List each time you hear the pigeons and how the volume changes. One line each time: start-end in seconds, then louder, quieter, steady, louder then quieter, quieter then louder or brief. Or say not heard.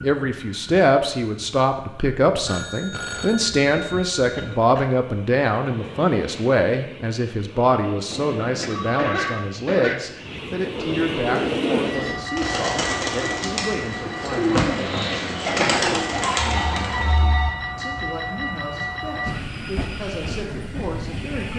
11.2-17.2 steady.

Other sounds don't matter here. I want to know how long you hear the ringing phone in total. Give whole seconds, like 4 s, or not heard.
4 s.